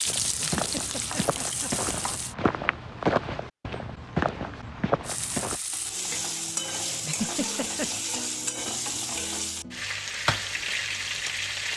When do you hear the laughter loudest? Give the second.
7 s.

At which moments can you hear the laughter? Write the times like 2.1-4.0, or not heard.
0.4-2.2, 7.0-7.9.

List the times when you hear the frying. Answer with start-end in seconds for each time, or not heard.
0.0-2.4, 5.0-11.7.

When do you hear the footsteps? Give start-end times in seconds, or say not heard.
0.1-5.6.